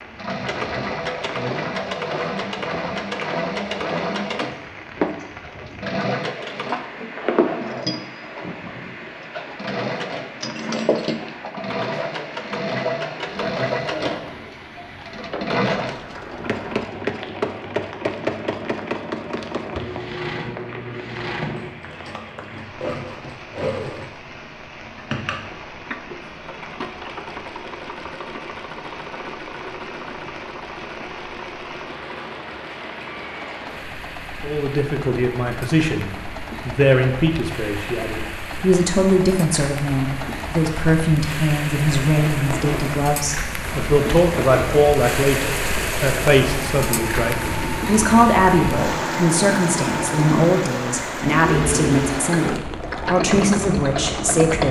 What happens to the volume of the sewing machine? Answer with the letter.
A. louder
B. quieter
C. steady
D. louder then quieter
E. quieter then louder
E.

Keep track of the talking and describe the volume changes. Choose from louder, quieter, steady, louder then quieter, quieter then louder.
steady.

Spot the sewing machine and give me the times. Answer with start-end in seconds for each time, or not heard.
0.0-54.6.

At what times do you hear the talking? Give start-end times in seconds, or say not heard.
34.4-54.6.